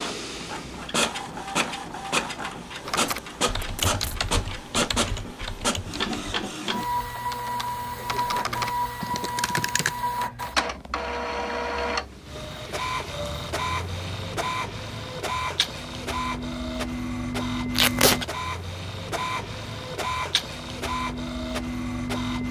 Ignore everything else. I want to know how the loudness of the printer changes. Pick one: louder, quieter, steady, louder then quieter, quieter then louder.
steady.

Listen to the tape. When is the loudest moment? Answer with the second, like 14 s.
18 s.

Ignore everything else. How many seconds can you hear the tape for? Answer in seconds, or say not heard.
2 s.